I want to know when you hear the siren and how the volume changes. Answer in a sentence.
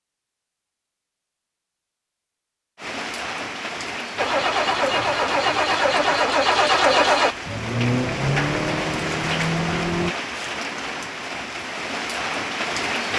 The siren can't be heard in this clip.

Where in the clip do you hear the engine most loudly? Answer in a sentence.
The loudest moment of the engine is at 7 seconds.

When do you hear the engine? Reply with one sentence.
You can hear the engine from 4.2 to 10.2 s.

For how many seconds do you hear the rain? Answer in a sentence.
You can hear the rain for 10 seconds altogether.